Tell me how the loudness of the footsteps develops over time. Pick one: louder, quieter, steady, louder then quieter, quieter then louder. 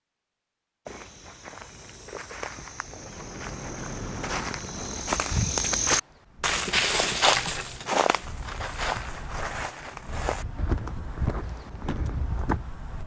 louder then quieter.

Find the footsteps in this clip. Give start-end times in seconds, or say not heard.
0.8-12.6.